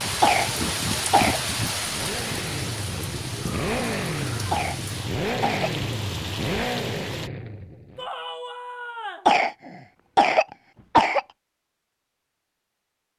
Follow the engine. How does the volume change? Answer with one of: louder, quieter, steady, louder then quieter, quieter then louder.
louder.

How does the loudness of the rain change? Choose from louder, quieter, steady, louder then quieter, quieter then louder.
quieter.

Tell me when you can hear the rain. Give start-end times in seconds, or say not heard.
0.0-7.3.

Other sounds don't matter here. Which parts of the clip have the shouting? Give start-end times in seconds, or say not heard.
3.3-4.5, 8.0-9.3.